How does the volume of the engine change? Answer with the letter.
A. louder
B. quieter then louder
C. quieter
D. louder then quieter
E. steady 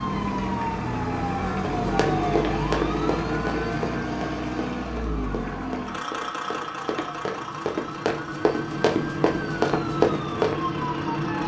C.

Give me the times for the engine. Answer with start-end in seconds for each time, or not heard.
0.0-11.4.